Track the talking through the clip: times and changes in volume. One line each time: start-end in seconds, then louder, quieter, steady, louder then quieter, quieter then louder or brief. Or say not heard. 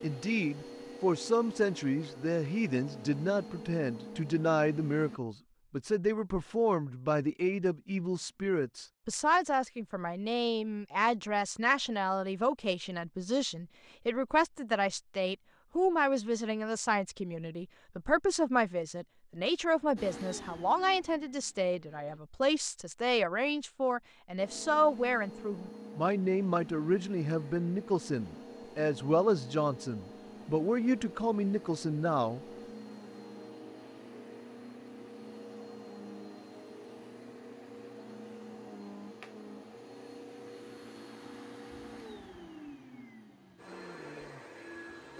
0.0-32.4 steady.